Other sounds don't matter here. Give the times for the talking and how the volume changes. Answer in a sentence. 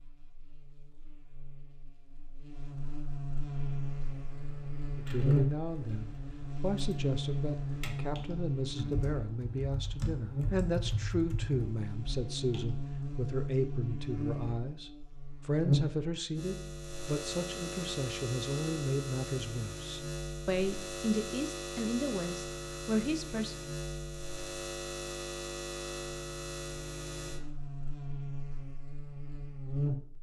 You can hear the talking from 5.0 to 23.6 s, at a steady volume.